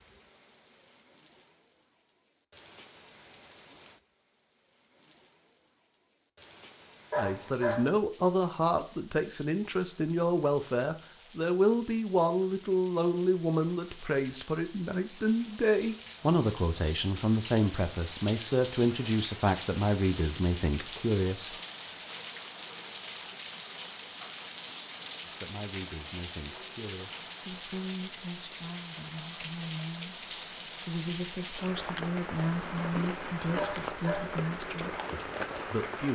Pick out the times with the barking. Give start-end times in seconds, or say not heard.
7.1-7.9, 33.5-34.4.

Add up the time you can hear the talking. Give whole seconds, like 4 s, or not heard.
25 s.